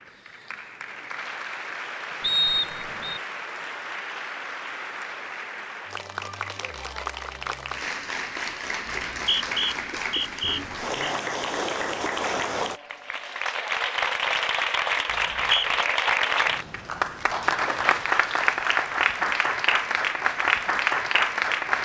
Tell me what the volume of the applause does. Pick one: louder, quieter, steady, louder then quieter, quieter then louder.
louder.